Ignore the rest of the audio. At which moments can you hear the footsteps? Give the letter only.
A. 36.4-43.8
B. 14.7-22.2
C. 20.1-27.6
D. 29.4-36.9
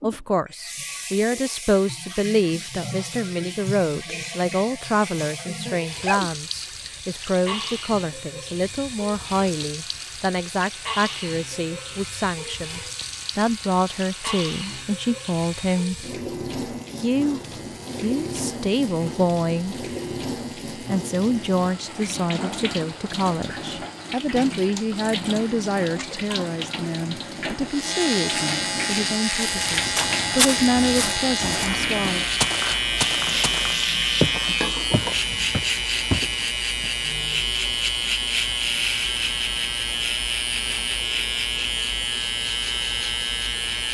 D.